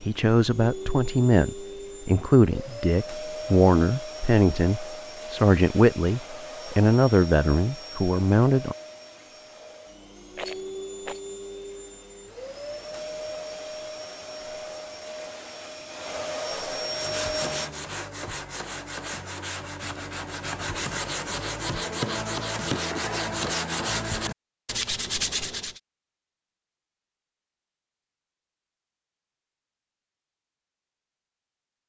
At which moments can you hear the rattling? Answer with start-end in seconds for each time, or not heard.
10.3-11.2.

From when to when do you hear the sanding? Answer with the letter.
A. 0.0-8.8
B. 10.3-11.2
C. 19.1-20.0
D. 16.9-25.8
D.